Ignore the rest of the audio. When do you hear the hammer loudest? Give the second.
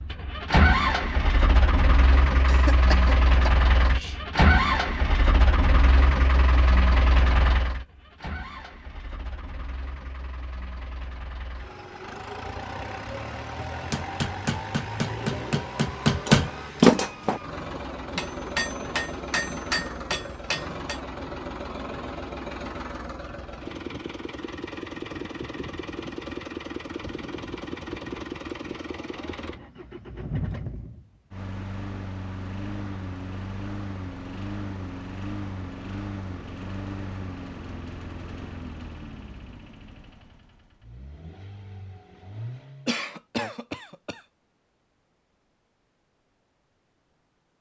17 s.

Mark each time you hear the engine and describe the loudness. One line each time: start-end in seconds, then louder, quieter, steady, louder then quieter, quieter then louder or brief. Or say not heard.
0.0-43.0 quieter.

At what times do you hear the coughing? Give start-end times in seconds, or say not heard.
2.5-4.2, 42.9-44.2.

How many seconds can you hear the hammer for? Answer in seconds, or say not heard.
7 s.